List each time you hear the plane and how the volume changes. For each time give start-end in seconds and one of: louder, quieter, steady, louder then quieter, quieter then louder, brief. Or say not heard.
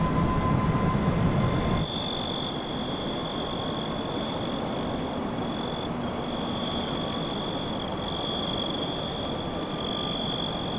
0.0-10.7 quieter.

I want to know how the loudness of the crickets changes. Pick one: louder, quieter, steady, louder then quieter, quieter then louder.
steady.